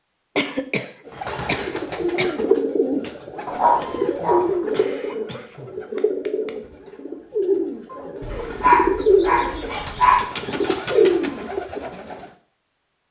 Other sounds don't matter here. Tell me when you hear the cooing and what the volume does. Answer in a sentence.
The cooing can be heard from 1.1 to 12.2 s, at a steady volume.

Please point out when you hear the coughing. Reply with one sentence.
You can hear the coughing from 0.3 to 2.4 s, from 4.7 to 6.5 s and from 9.9 to 11.2 s.